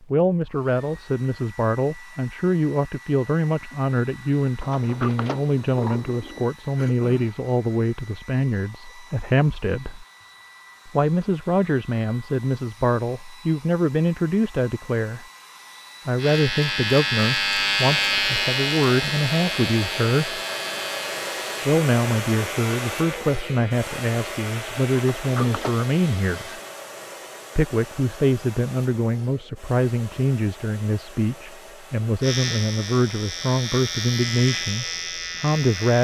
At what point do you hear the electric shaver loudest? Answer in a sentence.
The volume of the electric shaver peaks at 18 seconds.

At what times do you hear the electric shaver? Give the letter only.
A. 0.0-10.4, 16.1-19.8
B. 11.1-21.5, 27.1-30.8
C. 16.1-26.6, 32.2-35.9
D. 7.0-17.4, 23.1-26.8
C.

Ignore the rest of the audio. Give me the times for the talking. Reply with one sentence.
The talking can be heard from 0.0 to 10.1 s, from 10.8 to 15.2 s, from 16.1 to 20.4 s, from 21.6 to 26.6 s and from 27.6 to 35.9 s.